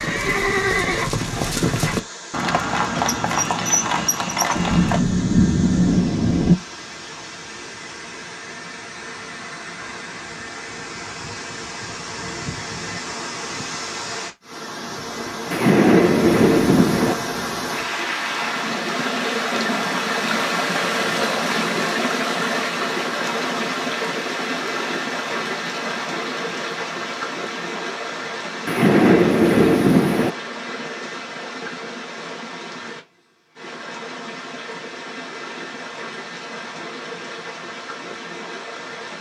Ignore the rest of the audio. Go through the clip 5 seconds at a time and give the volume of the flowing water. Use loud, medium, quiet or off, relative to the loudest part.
quiet, quiet, medium, loud, loud, medium, medium, medium.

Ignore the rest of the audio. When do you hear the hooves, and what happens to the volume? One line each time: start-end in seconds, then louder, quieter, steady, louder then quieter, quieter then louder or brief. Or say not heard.
0.0-5.0 steady.